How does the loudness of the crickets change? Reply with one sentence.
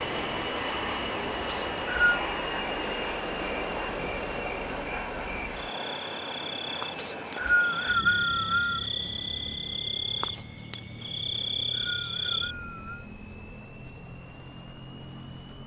The volume of the crickets goes up.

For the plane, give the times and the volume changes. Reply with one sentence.
The plane can be heard from 0.0 to 15.6 s, getting quieter.